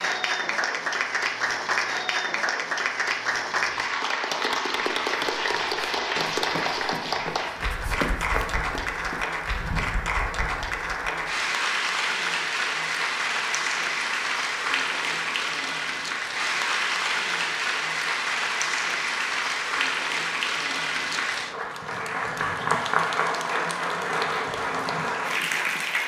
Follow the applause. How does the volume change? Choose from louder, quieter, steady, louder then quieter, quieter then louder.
steady.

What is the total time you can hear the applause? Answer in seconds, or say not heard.
26 s.